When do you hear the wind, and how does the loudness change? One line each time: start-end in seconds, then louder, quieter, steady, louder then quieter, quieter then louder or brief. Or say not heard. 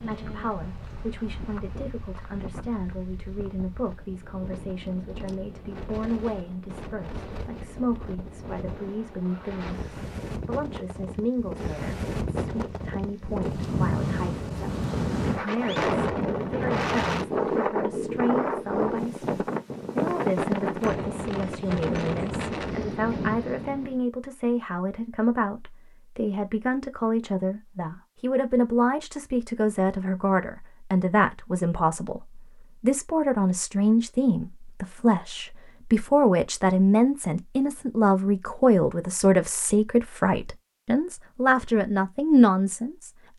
0.0-24.0 louder.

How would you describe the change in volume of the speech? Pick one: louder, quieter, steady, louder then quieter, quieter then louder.
louder.